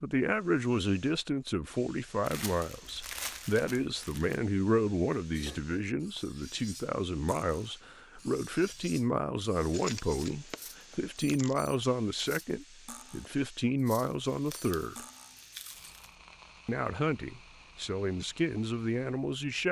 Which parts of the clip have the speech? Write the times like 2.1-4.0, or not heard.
0.0-15.0, 16.6-19.6.